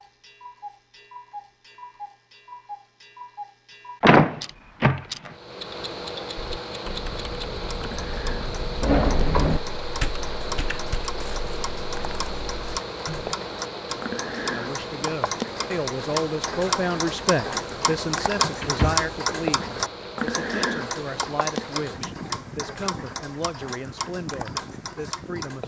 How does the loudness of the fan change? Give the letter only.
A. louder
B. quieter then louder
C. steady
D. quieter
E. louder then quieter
D.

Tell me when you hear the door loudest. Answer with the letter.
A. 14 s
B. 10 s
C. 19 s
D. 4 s
D.